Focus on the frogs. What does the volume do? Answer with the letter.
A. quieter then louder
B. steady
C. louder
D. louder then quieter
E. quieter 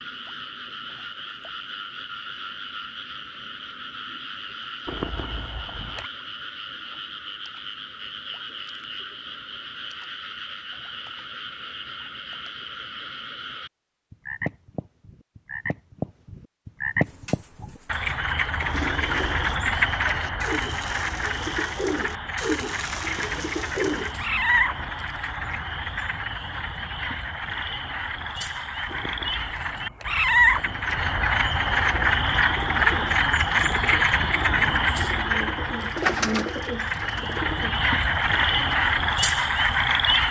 C.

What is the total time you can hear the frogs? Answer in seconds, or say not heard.
40 s.